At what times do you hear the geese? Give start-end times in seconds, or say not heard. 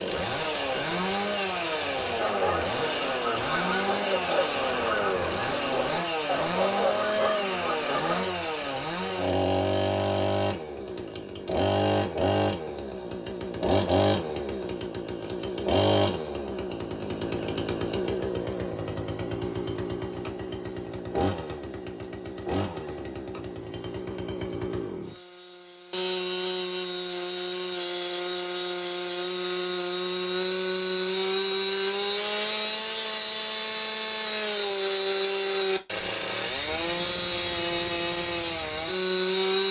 2.1-8.2.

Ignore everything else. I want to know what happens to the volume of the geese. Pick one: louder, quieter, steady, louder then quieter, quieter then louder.
steady.